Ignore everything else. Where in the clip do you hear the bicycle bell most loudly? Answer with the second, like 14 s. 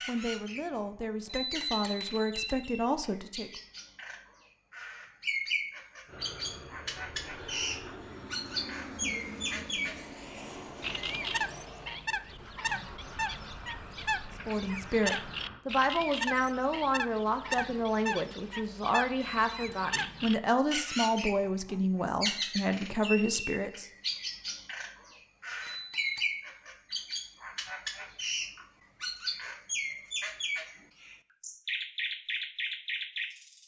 2 s.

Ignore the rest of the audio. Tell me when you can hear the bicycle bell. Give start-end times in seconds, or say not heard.
1.3-2.5, 19.1-19.9, 25.6-26.2.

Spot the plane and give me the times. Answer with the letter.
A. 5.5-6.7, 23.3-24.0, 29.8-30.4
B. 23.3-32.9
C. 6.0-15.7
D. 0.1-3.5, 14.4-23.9
C.